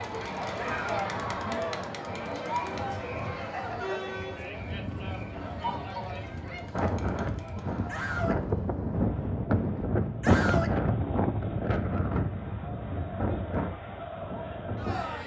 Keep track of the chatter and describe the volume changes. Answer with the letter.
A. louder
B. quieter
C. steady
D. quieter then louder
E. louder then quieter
D.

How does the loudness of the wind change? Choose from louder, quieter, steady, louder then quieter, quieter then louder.
louder then quieter.